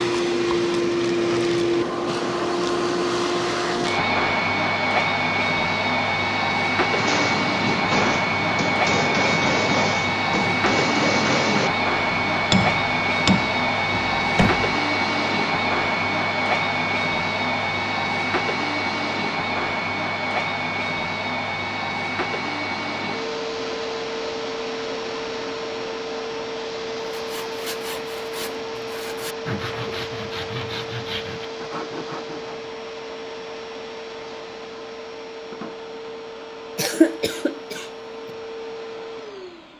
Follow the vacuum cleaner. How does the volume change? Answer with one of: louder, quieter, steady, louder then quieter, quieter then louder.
quieter.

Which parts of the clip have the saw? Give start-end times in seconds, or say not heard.
27.1-32.7.